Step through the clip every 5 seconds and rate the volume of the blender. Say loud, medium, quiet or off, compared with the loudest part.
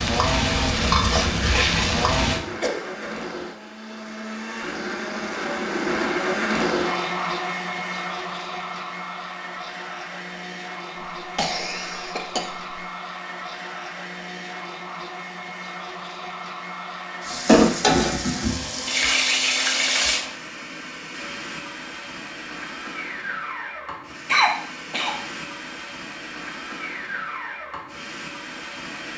medium, loud, medium, medium, medium, medium.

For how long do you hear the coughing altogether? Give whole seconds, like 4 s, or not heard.
3 s.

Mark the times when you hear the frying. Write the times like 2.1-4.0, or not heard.
0.0-2.4, 17.2-20.2.